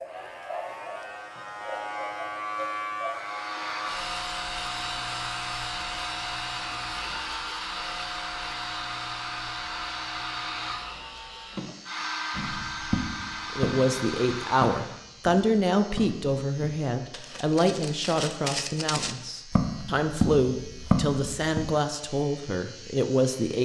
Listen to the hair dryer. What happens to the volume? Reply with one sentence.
The loudness of the hair dryer stays about the same.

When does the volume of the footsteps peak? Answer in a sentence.
The volume of the footsteps peaks at 21 seconds.